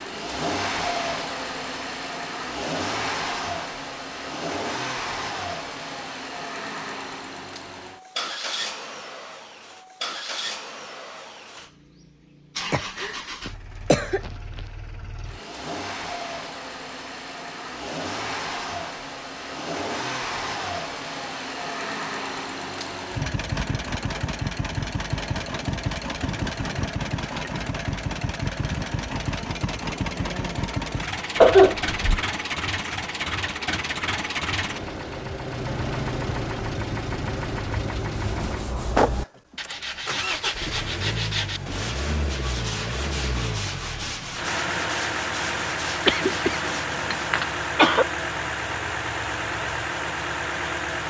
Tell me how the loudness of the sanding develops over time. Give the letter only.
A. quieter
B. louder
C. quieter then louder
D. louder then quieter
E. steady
E.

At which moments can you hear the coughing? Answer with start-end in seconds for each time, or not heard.
12.7-14.3, 31.4-32.2, 46.0-48.0.